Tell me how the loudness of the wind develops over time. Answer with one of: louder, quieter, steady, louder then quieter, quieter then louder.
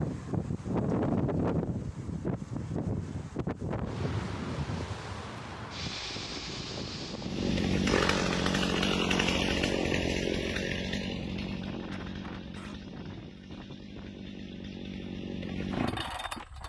quieter.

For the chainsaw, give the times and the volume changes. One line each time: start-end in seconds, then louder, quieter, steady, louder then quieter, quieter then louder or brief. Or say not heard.
7.2-16.6 quieter then louder.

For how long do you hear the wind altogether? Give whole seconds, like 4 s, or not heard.
14 s.